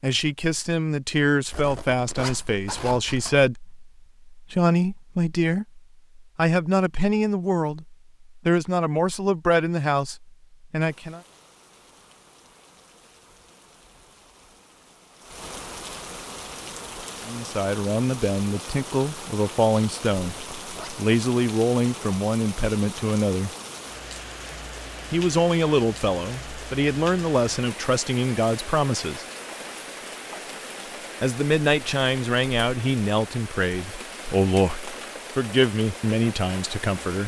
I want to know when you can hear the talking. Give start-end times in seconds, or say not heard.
0.0-11.2, 17.2-23.5, 25.1-29.2, 31.2-37.2.